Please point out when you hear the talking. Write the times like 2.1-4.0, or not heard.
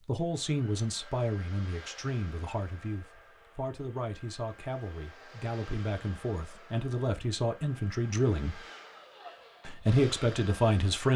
0.1-8.7, 9.7-11.1.